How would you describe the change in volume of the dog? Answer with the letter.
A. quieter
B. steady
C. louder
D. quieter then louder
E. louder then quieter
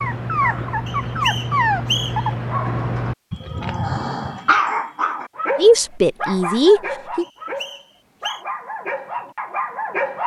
A.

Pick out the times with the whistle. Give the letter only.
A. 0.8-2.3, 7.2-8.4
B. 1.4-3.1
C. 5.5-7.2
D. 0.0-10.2
A.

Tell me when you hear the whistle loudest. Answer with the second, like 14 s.
2 s.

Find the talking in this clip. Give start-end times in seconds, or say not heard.
5.5-7.2.